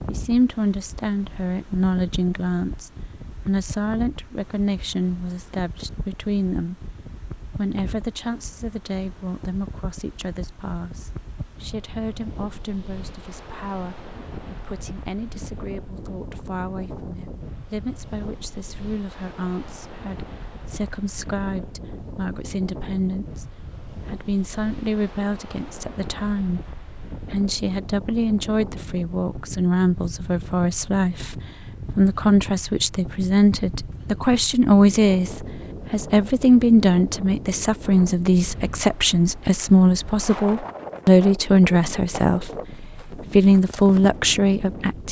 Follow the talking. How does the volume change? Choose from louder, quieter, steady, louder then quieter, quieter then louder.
quieter then louder.